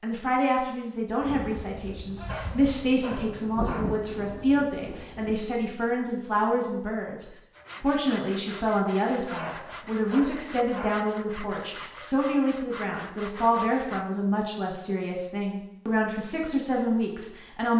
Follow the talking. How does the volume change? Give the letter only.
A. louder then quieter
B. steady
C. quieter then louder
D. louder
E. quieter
B.